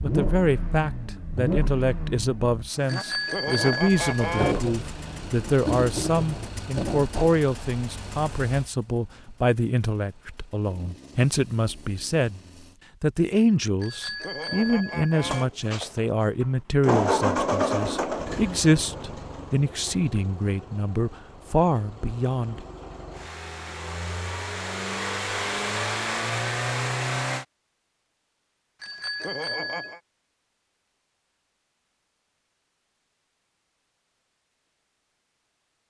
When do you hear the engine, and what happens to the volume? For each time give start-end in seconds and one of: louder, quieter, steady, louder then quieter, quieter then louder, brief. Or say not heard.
0.0-12.8 quieter
15.2-27.4 quieter then louder.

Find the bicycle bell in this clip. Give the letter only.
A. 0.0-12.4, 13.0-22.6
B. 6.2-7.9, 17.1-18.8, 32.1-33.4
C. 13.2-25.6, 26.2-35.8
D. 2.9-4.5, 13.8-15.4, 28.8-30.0
D.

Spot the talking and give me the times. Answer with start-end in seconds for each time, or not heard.
0.0-12.4, 13.0-22.6.